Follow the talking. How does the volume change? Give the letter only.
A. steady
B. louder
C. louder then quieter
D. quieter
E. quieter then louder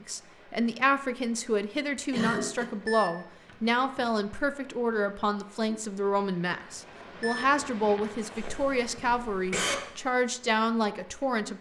A.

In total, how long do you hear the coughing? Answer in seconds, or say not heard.
2 s.